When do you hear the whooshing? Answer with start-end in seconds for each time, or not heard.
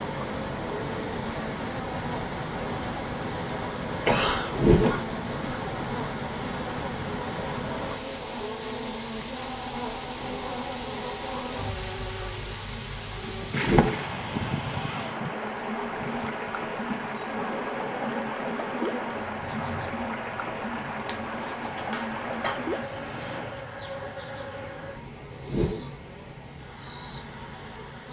4.5-5.0, 13.6-14.1, 25.4-25.9.